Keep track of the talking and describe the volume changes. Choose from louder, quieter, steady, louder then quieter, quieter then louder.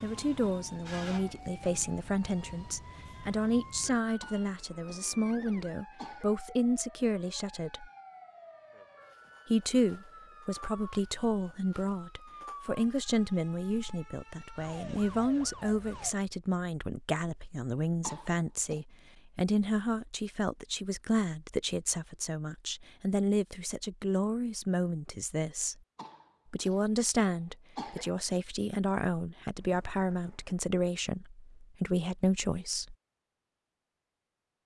steady.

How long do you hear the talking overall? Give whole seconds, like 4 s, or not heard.
31 s.